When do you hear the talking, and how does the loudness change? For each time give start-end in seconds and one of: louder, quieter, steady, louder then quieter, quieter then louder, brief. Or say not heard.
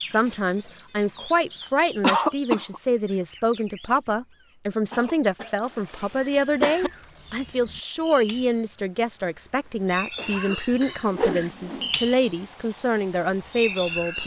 0.0-14.2 steady.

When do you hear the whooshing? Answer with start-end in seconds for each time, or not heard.
11.1-11.9.